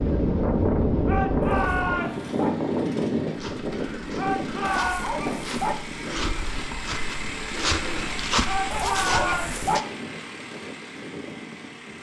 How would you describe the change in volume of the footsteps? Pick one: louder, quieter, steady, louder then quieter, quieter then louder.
louder.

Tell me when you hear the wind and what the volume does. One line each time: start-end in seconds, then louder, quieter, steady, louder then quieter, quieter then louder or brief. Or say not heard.
0.0-11.9 quieter.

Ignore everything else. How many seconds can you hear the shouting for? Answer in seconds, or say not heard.
3 s.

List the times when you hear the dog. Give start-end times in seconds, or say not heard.
1.4-2.5, 4.6-5.8, 8.7-9.8.